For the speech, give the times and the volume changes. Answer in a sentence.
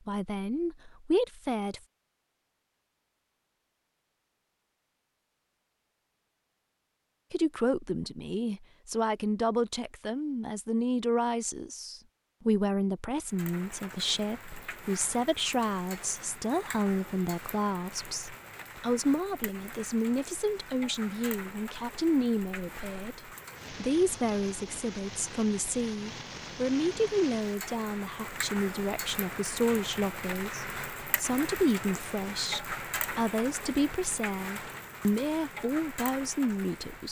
You can hear the speech briefly from 0.1 to 1.8 s; and from 7.3 to 37.0 s, at a steady volume.